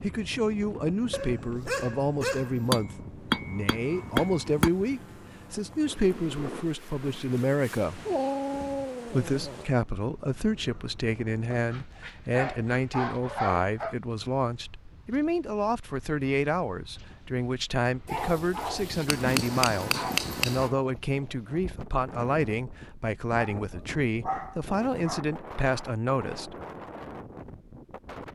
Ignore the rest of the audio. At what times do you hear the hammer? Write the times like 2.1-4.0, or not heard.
2.7-4.7, 19.1-20.7.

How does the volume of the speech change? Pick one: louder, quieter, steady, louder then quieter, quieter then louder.
steady.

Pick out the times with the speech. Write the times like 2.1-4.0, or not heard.
0.0-8.0, 9.1-26.6.